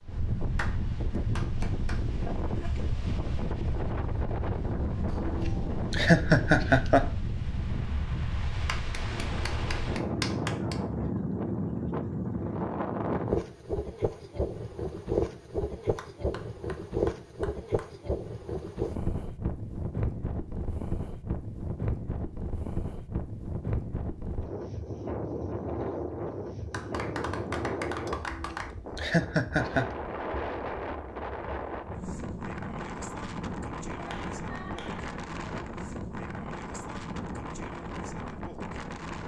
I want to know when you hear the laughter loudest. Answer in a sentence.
The volume of the laughter peaks at 6 seconds.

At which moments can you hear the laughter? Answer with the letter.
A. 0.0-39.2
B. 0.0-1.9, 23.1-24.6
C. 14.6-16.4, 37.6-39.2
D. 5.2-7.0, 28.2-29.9
D.